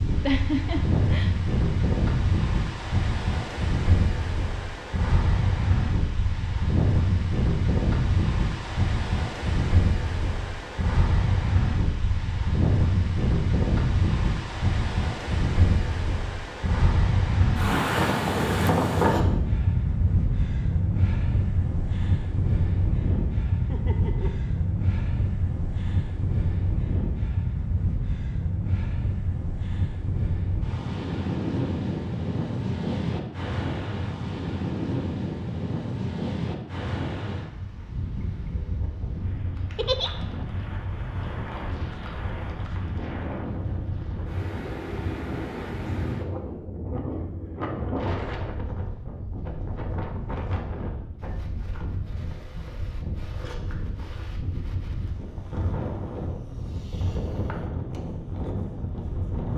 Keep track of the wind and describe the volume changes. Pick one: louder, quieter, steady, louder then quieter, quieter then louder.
quieter.